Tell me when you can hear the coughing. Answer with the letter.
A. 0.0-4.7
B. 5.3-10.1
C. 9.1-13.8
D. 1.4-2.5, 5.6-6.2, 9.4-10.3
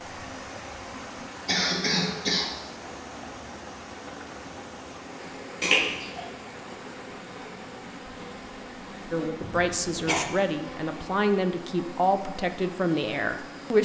D.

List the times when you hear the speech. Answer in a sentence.
You can hear the speech from 9.1 to 13.8 s.